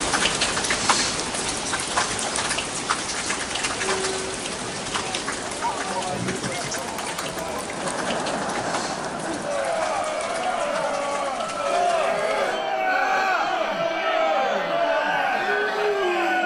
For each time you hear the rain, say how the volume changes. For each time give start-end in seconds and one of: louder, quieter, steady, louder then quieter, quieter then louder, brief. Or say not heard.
0.0-12.6 quieter.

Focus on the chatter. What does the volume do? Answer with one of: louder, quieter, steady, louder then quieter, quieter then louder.
louder.